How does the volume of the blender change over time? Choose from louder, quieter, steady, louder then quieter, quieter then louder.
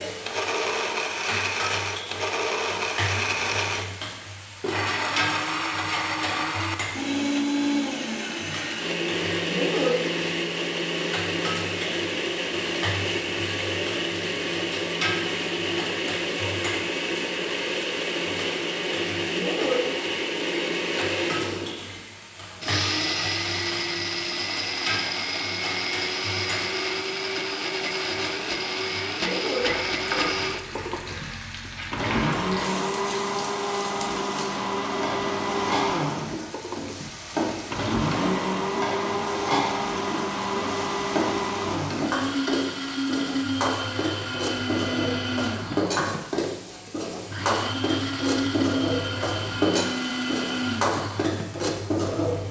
steady.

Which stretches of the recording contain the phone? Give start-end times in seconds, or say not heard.
not heard.